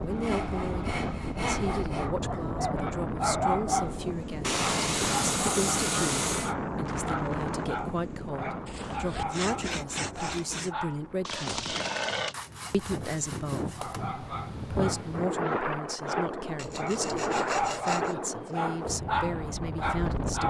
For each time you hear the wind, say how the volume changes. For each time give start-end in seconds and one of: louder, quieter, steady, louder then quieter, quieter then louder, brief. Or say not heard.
0.0-20.4 quieter then louder.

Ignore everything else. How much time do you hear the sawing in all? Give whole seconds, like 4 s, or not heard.
10 s.